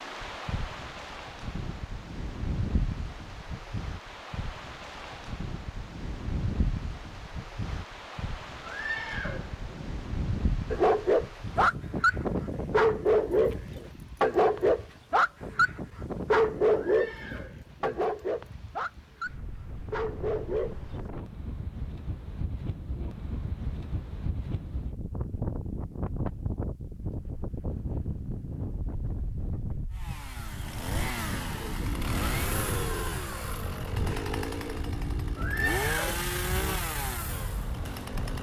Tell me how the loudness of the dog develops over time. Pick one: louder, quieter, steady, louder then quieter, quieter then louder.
quieter.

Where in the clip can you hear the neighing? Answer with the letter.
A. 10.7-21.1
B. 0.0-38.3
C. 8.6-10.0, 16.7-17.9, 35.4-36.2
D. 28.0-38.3
C.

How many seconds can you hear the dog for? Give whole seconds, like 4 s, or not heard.
10 s.